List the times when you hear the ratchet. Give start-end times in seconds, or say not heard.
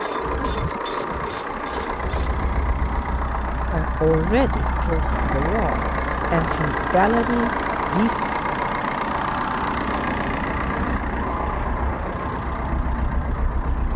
0.0-2.5.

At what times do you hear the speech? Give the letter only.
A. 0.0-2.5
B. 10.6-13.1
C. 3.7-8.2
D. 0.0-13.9
C.